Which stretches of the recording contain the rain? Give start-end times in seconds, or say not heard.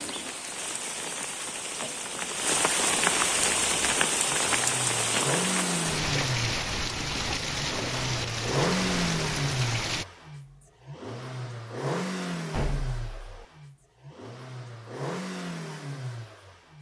0.0-10.1.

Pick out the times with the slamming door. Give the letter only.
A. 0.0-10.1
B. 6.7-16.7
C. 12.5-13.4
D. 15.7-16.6
C.